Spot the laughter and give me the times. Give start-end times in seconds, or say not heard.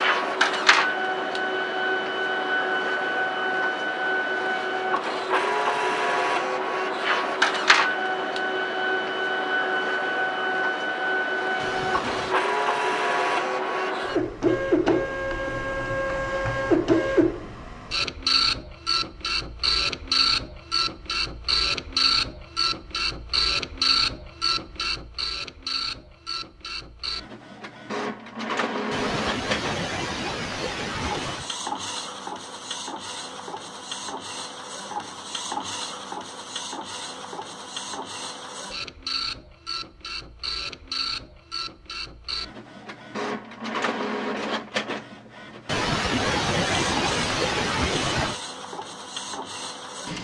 11.6-12.4, 28.9-31.5, 45.6-48.4.